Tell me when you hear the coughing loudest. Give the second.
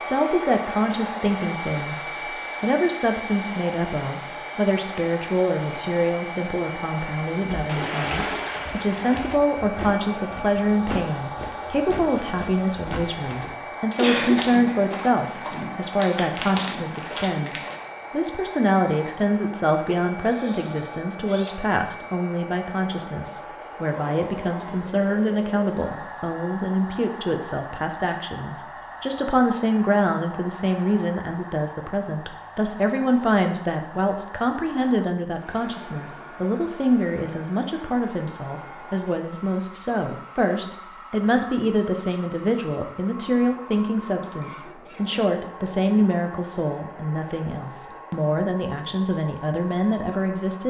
14 s.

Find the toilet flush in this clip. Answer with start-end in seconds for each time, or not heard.
7.7-9.4.